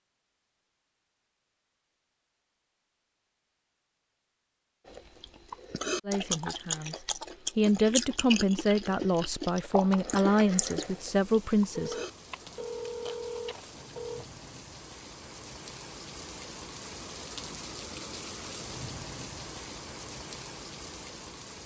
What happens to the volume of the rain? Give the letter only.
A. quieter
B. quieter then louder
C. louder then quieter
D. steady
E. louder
E.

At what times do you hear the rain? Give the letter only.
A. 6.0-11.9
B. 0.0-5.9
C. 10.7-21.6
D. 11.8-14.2
C.